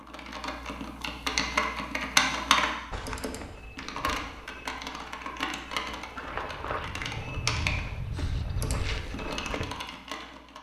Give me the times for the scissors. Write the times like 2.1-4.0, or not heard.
not heard.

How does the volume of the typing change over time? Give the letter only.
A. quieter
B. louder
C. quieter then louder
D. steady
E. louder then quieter
A.